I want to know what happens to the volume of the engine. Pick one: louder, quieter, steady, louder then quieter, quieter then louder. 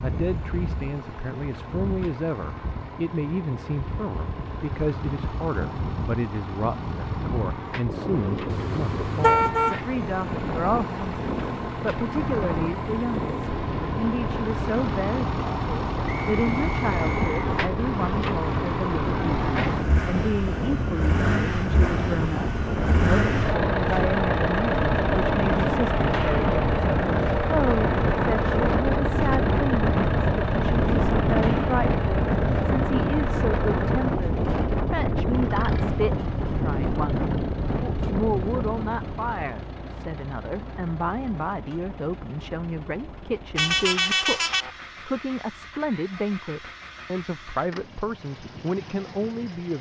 louder then quieter.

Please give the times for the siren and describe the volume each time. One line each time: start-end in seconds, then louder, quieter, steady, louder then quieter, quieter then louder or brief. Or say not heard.
not heard.